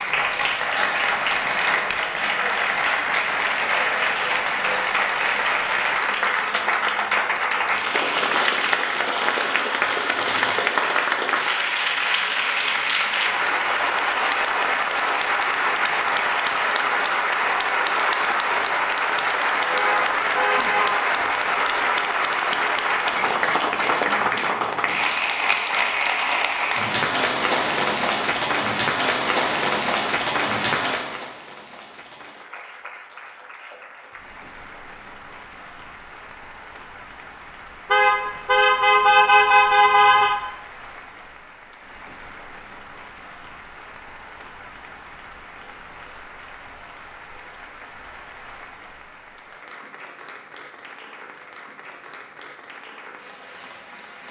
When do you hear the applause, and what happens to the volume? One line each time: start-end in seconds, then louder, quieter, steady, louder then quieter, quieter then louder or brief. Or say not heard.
0.0-54.2 quieter.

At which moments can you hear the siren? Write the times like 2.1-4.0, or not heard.
not heard.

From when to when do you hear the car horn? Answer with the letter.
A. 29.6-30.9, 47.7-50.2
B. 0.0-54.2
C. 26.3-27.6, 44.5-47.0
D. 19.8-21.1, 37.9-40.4
D.